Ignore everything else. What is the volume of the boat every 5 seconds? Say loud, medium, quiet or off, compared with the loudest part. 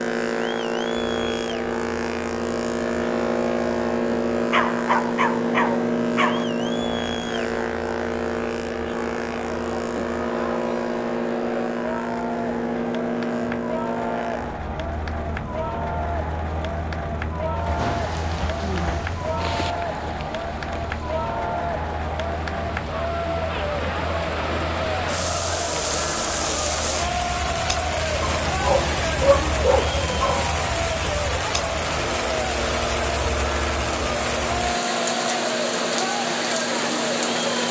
loud, loud, loud, medium, quiet, quiet, medium, medium.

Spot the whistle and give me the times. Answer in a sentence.
The whistle can't be heard in this clip.